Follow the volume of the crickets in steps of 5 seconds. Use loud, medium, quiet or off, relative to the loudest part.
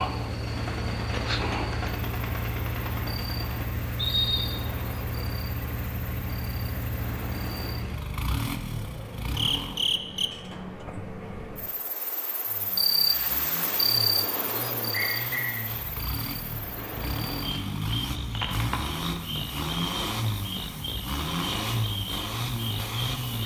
medium, medium, loud, medium, medium.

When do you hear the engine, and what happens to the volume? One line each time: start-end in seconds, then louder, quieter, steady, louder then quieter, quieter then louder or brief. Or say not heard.
0.0-9.8 steady
12.4-23.4 louder.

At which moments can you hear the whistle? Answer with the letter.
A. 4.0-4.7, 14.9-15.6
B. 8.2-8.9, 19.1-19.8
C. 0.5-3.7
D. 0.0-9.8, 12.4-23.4
A.